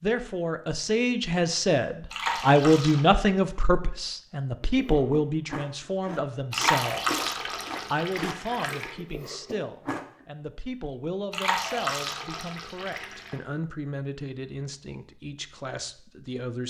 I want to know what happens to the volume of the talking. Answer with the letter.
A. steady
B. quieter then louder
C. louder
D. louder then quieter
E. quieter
E.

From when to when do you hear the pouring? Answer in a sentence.
The pouring can be heard from 2.1 to 3.0 s, from 6.5 to 8.9 s and from 11.3 to 13.3 s.